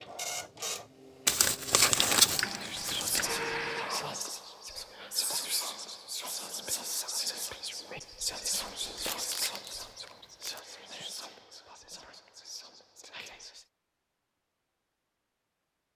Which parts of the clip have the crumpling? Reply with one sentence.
You can hear the crumpling from 1.2 to 3.2 s and from 8.8 to 10.6 s.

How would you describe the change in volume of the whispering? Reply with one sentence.
The loudness of the whispering goes down.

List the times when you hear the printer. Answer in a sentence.
The printer can be heard from 0.0 to 4.2 s.